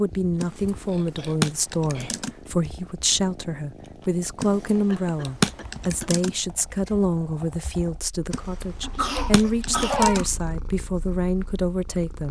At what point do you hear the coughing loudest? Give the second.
10 s.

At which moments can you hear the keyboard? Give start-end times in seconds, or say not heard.
0.4-2.4, 4.4-6.3, 8.3-10.2.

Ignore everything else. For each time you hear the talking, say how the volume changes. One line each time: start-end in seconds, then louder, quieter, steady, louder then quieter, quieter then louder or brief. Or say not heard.
0.0-12.2 steady.